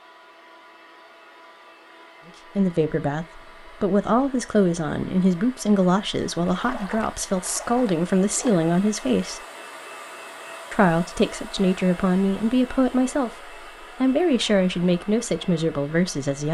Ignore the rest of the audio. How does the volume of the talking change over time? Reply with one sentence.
The loudness of the talking stays about the same.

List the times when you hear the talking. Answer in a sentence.
The talking can be heard from 2.5 to 9.4 s and from 10.7 to 16.4 s.